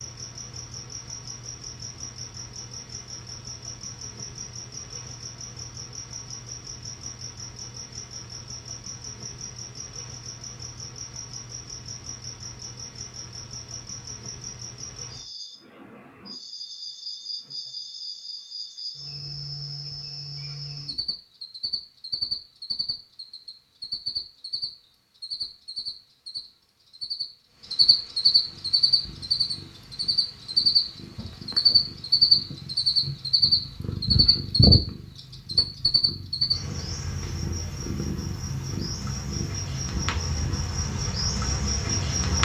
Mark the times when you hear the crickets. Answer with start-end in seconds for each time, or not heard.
0.0-42.4.